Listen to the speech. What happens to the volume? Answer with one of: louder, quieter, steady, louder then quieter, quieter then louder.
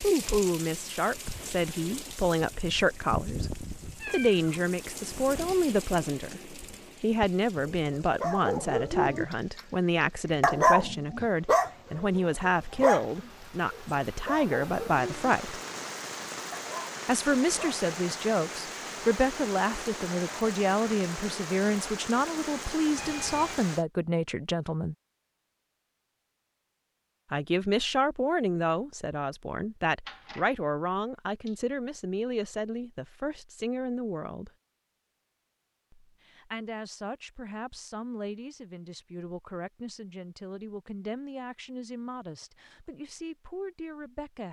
quieter.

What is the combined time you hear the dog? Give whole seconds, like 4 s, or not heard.
8 s.